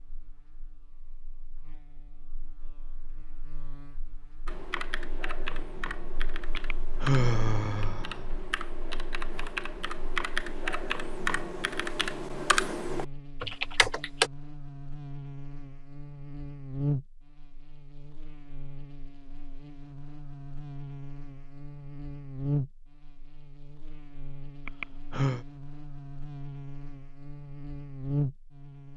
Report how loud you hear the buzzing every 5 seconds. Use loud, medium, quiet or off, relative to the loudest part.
quiet, quiet, medium, loud, loud, loud.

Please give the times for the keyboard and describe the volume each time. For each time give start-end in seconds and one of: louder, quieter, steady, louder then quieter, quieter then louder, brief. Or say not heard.
4.5-14.3 louder.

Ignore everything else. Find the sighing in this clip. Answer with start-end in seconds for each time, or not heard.
6.5-8.2, 24.6-25.4.